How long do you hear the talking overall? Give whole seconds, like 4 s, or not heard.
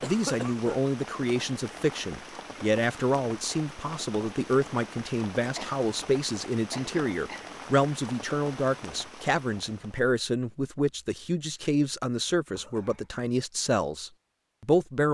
15 s.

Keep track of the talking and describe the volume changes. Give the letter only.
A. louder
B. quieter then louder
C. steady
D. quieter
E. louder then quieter
C.